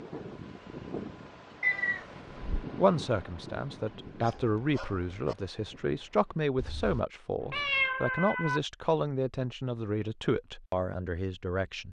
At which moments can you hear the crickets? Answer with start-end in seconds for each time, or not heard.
not heard.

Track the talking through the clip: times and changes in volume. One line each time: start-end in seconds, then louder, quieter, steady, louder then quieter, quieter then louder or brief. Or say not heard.
2.8-11.8 steady.